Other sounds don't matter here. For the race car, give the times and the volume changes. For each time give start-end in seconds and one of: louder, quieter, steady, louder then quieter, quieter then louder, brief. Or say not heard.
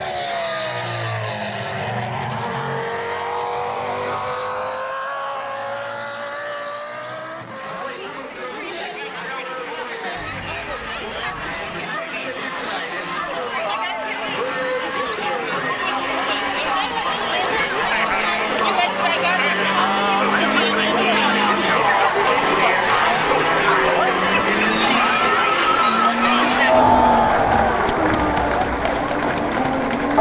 0.0-30.1 quieter then louder.